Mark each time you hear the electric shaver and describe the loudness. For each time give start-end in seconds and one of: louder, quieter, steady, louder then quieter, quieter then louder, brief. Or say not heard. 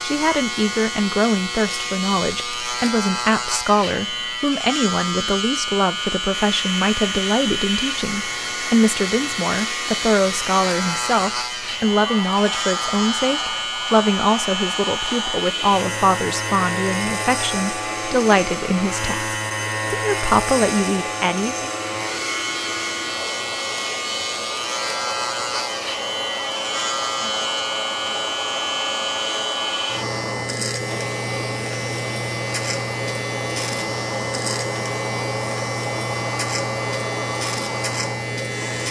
0.0-38.8 steady.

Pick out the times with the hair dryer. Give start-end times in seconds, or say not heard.
6.3-38.8.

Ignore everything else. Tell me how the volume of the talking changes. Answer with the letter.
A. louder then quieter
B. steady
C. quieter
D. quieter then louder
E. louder
B.